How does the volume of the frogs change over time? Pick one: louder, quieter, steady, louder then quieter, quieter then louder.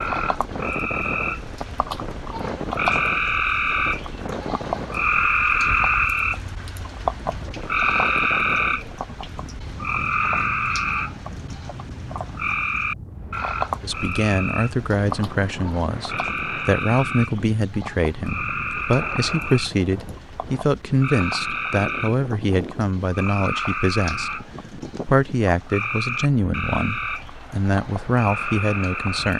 quieter.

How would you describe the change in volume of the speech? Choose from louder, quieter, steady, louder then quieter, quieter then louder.
steady.